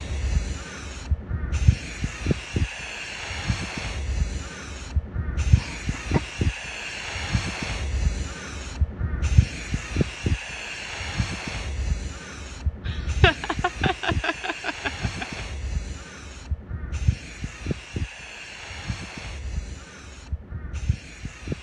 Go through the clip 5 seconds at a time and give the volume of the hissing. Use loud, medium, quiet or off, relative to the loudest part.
loud, loud, loud, medium, medium.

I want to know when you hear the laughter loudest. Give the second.
13 s.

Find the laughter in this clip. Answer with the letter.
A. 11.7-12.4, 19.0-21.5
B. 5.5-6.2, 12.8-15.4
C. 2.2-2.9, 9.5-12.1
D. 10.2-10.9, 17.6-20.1
B.